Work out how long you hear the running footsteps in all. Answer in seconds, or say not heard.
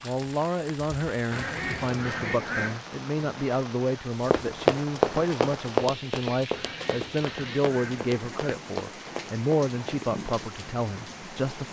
6 s.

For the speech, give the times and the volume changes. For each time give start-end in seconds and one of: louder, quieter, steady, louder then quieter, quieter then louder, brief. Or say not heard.
0.0-11.6 steady.